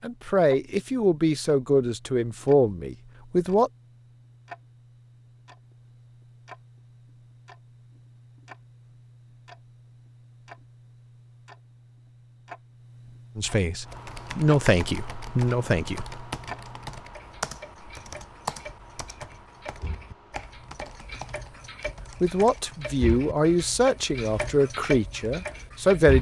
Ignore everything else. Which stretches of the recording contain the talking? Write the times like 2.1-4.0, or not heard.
0.0-3.7, 13.3-16.1, 22.2-26.1.